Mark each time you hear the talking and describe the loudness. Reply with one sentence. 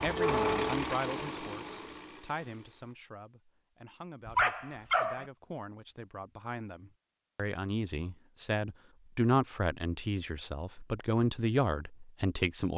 You can hear the talking from 0.0 to 12.7 s, getting quieter then louder.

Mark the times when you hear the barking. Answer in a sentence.
You can hear the barking from 4.2 to 5.2 s.